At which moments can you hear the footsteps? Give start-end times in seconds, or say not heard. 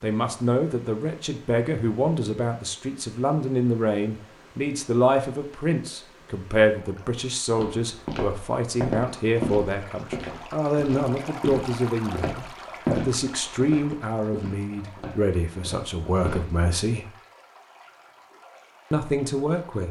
7.5-16.5.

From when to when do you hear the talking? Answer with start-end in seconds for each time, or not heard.
0.0-17.1, 18.9-19.8.